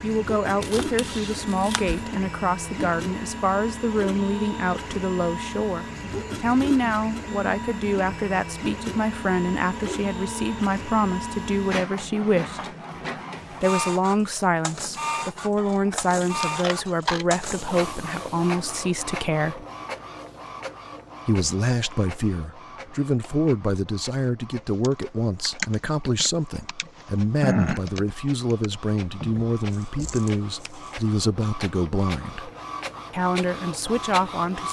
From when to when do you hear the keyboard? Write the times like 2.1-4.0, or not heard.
24.5-30.7.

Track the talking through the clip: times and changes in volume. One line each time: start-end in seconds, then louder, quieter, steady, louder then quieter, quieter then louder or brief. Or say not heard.
0.0-12.7 steady
13.6-19.6 steady
21.2-32.5 steady
33.1-34.6 brief.